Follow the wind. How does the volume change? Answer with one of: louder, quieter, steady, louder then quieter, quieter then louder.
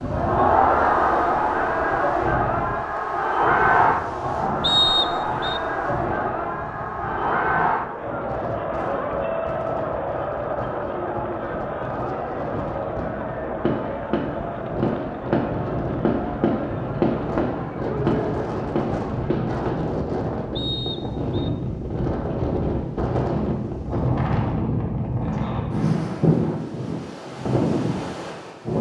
louder.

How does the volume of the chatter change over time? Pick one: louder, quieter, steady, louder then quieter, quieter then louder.
quieter.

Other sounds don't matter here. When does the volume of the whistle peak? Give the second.
5 s.